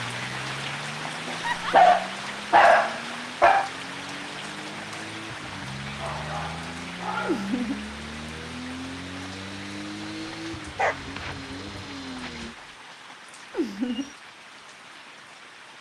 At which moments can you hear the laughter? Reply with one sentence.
You can hear the laughter from 1.4 to 1.9 s, from 7.2 to 7.8 s and from 13.5 to 14.1 s.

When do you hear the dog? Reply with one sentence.
You can hear the dog from 1.2 to 3.7 s, from 6.0 to 7.5 s and from 10.8 to 12.3 s.